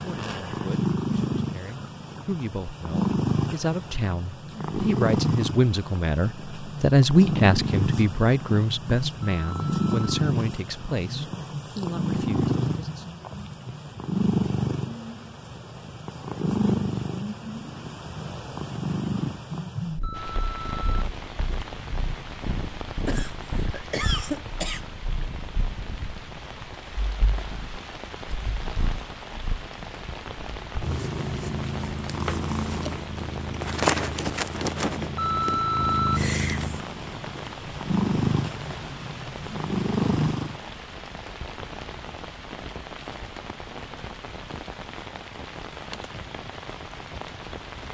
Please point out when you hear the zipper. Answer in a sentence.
You can't hear the zipper here.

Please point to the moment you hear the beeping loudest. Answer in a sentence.
The loudest moment of the beeping is at 36 seconds.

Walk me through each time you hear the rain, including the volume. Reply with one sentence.
The rain can be heard from 20.1 to 47.8 s, at a steady volume.